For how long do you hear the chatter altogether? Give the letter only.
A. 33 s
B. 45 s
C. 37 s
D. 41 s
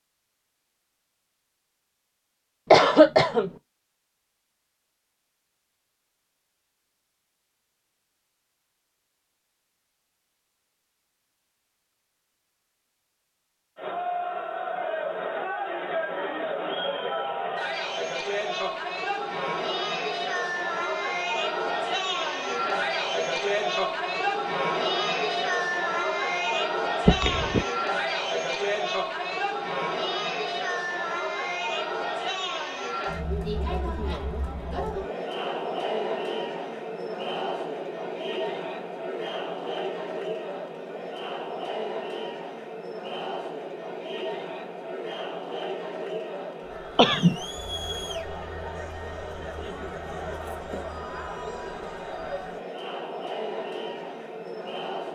D.